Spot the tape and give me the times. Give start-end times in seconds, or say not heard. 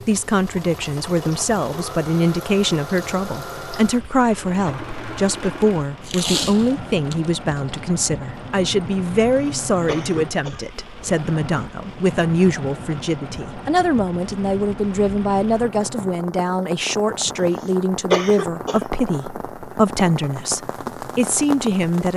6.0-7.8.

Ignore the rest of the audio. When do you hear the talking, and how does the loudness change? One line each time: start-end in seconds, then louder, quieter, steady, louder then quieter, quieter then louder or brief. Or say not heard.
0.1-22.1 steady.